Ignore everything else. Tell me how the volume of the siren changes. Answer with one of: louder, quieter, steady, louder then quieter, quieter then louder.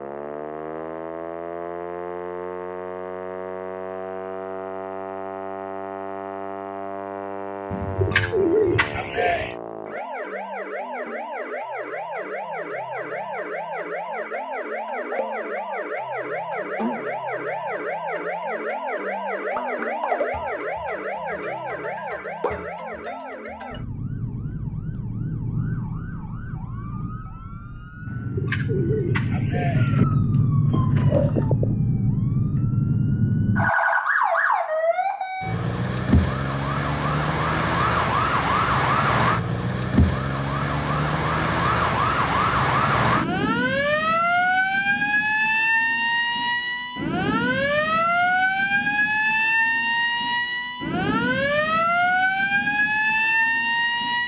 louder.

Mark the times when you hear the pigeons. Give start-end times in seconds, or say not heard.
7.7-9.6, 28.1-30.1.